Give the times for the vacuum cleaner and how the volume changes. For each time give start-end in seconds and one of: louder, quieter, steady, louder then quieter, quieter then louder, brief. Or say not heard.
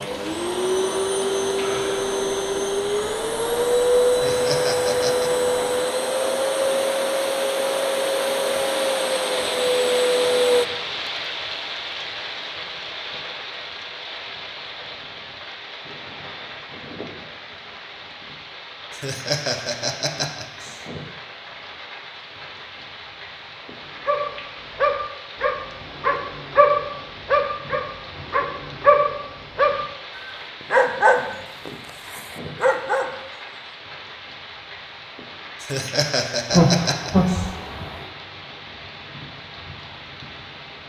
0.0-10.7 steady.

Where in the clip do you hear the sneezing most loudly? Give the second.
37 s.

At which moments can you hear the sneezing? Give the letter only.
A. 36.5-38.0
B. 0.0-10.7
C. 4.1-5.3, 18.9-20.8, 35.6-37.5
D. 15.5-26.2
A.